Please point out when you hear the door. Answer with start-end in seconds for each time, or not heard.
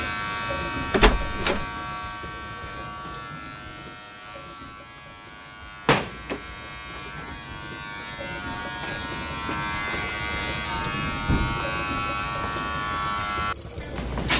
0.9-1.6, 5.6-7.4, 10.7-11.7.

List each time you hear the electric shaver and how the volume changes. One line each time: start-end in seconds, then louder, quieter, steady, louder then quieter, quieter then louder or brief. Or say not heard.
0.0-14.3 quieter then louder.